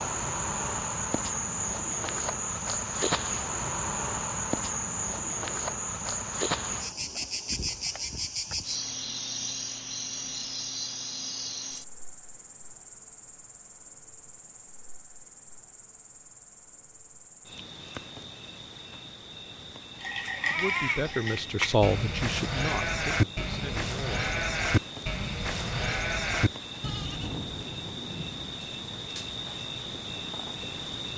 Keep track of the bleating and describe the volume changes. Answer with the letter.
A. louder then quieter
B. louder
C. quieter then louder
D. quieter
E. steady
E.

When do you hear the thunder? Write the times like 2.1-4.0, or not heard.
27.1-28.6.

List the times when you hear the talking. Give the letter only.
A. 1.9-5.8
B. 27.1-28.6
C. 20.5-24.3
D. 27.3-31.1
C.